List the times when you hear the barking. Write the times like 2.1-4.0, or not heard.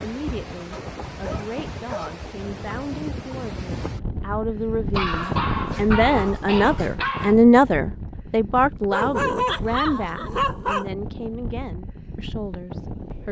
0.7-2.2, 4.9-7.3, 8.9-10.9.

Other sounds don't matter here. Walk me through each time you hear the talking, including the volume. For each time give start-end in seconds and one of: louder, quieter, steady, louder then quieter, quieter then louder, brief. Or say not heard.
0.0-13.2 louder then quieter.